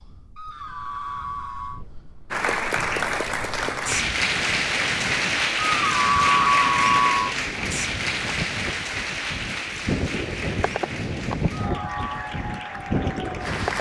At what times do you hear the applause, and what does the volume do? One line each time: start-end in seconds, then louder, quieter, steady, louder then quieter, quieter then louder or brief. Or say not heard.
2.3-13.7 quieter.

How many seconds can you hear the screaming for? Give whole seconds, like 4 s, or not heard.
4 s.